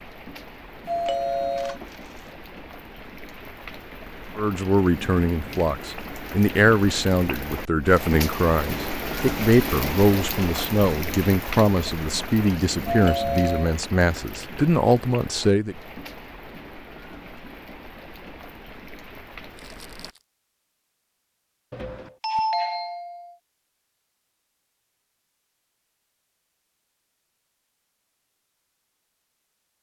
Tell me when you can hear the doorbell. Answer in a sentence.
The doorbell can be heard from 0.8 to 1.8 s, from 12.8 to 13.8 s and from 21.7 to 23.4 s.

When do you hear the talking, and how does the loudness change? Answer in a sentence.
You can hear the talking from 4.3 to 15.8 s, at a steady volume.